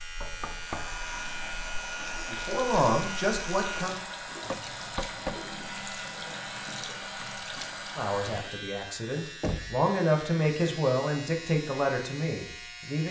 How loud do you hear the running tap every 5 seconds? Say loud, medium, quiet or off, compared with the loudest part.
loud, loud, off.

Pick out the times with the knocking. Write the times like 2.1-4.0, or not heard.
0.2-1.6, 4.4-5.5, 9.4-9.8.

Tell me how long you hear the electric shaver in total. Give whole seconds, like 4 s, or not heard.
13 s.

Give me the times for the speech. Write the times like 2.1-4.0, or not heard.
2.3-4.0, 8.0-13.0.